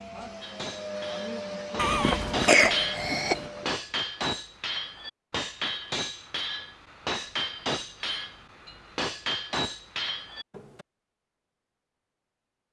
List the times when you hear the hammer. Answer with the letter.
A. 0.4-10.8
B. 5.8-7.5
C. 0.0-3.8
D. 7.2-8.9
A.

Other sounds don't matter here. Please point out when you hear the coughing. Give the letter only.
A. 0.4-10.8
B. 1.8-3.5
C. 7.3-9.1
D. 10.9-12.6
B.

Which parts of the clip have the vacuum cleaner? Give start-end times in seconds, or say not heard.
0.0-3.8.